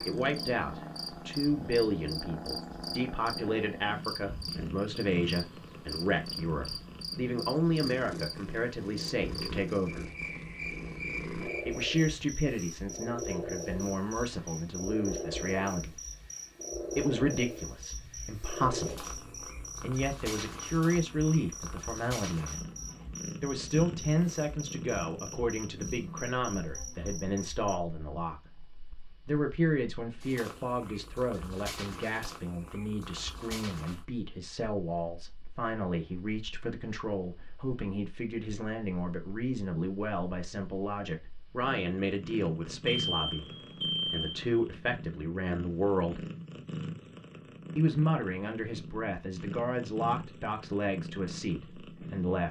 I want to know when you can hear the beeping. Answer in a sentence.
The beeping can be heard from 42.9 to 44.5 s.